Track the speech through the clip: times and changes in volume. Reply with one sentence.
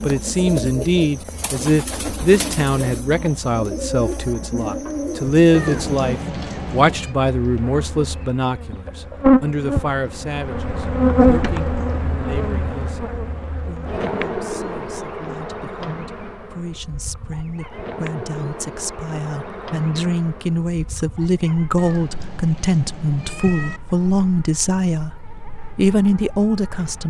The speech can be heard from 0.0 to 27.0 s, getting quieter then louder.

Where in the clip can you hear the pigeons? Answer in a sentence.
You can hear the pigeons from 0.0 to 6.1 s.